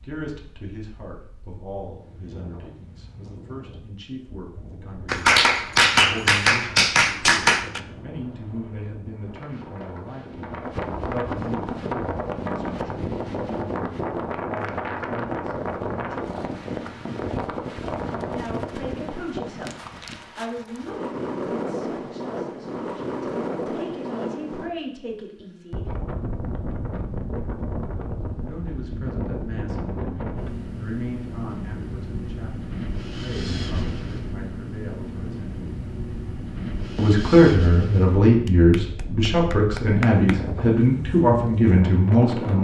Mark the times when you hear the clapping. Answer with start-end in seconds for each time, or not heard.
5.0-7.8, 38.5-40.4.